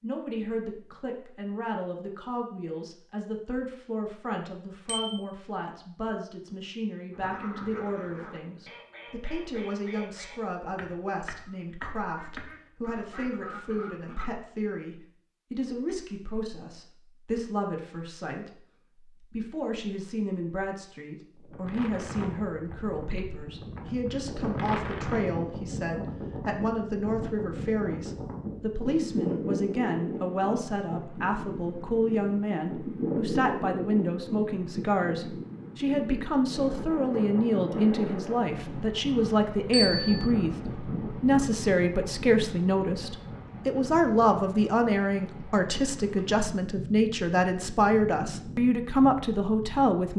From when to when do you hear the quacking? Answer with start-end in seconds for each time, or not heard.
7.1-14.3.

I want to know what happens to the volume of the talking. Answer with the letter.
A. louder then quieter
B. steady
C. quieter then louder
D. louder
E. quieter
D.